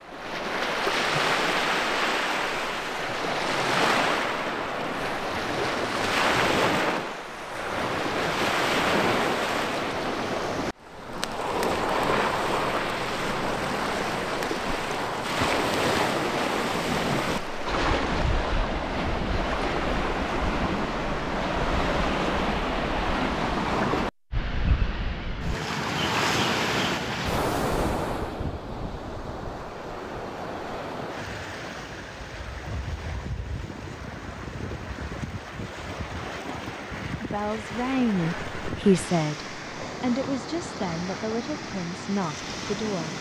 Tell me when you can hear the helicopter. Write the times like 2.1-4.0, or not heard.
not heard.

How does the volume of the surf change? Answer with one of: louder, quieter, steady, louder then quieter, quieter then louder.
quieter.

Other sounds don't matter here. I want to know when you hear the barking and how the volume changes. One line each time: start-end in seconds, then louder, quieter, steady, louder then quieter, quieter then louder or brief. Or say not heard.
not heard.